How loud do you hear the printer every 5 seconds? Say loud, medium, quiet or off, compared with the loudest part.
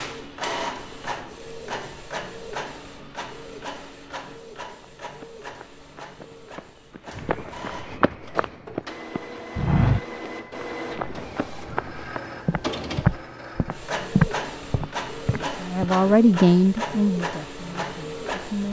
loud, medium, loud, loud.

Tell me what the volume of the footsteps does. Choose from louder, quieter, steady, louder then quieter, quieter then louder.
louder.